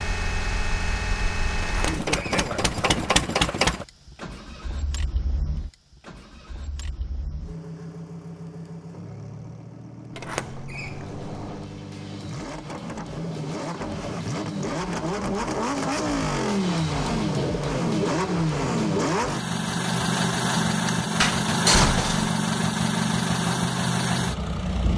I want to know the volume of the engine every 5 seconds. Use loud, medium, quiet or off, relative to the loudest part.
loud, quiet, medium, loud, loud.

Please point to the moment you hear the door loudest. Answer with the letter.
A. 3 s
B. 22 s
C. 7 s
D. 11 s
B.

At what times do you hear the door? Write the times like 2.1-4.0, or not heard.
1.6-3.2, 10.2-11.7, 21.2-22.3.